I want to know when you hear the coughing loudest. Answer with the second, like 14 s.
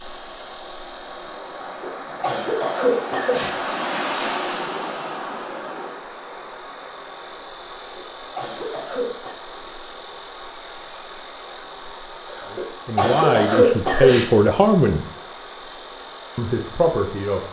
14 s.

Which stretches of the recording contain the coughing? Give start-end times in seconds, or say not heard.
1.6-3.5, 7.8-9.3, 12.3-14.2.